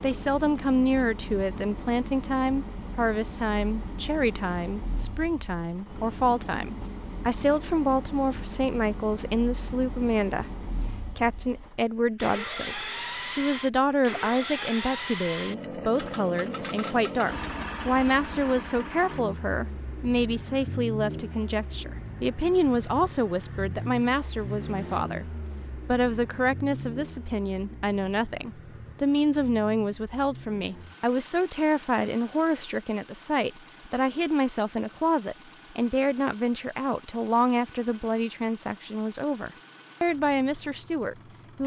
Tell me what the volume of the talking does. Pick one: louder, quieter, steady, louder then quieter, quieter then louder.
steady.